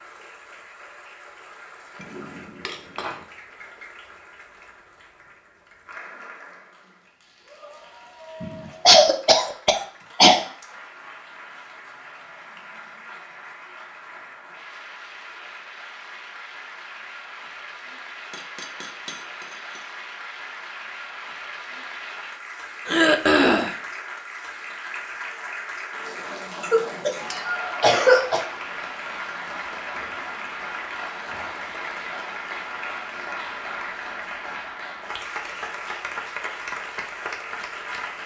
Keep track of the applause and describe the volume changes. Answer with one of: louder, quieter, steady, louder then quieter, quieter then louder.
louder.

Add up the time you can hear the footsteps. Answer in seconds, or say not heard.
not heard.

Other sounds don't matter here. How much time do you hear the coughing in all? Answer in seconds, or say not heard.
4 s.